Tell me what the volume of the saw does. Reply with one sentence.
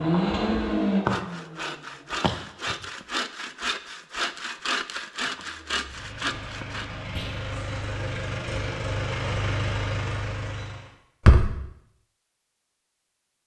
The volume of the saw stays about the same.